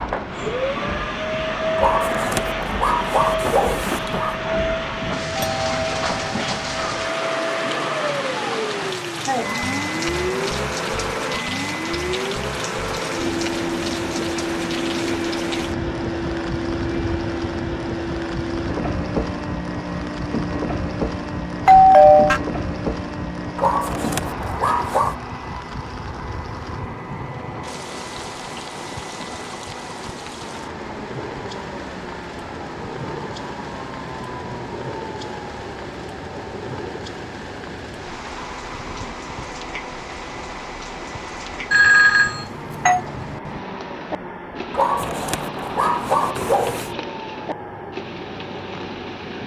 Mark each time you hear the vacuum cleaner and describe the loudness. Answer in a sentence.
The vacuum cleaner can be heard from 0.0 to 49.4 s, getting quieter.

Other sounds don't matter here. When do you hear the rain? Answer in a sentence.
The rain can be heard from 0.0 to 49.4 s.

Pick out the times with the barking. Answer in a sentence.
The barking can be heard from 1.8 to 4.4 s, from 23.6 to 25.1 s and from 44.7 to 46.9 s.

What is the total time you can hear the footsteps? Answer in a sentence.
You can't hear the footsteps here.